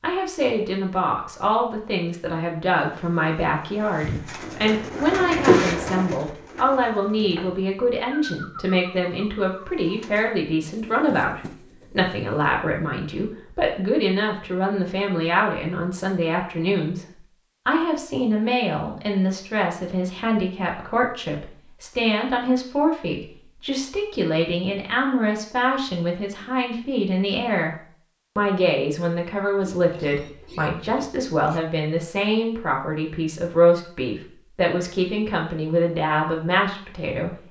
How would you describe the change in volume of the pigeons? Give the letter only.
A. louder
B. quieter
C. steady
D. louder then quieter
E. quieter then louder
D.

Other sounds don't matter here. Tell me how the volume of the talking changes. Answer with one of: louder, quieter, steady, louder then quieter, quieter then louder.
steady.